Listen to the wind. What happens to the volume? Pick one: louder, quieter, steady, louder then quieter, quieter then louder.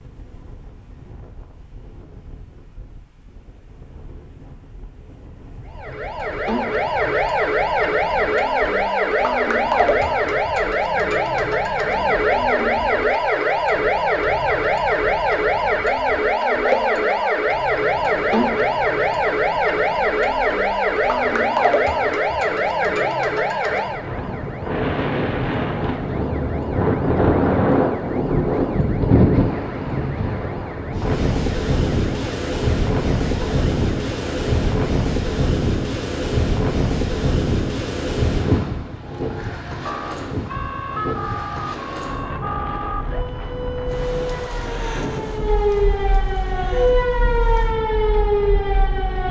louder then quieter.